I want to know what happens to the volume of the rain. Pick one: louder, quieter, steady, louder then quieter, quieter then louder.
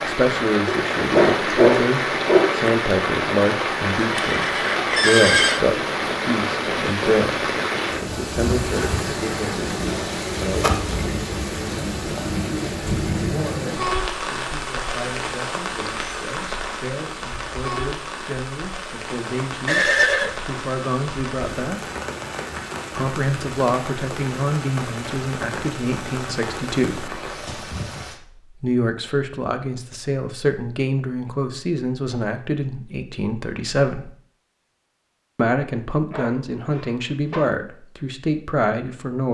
quieter.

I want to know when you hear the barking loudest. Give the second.
2 s.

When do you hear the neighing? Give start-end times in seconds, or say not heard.
4.2-5.6, 19.6-20.4.